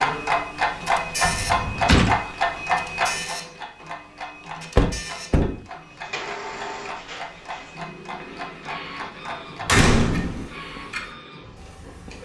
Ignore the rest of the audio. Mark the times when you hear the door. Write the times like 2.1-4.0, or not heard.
1.2-2.1, 4.8-5.6, 9.7-10.5.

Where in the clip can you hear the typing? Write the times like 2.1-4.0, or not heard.
not heard.